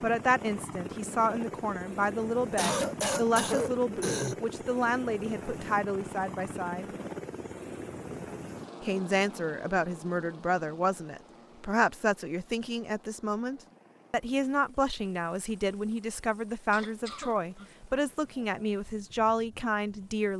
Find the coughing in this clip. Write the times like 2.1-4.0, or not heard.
2.5-4.3, 16.7-18.6.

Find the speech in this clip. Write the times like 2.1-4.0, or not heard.
0.0-6.8, 8.8-20.3.